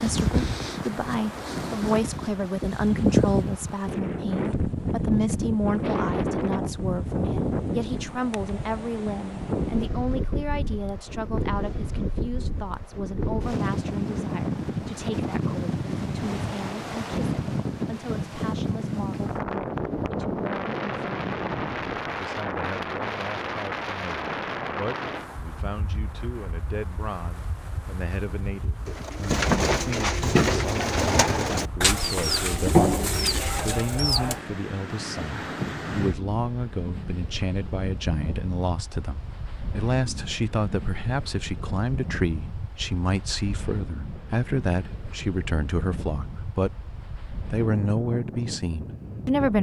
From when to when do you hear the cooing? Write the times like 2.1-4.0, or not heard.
28.9-34.4.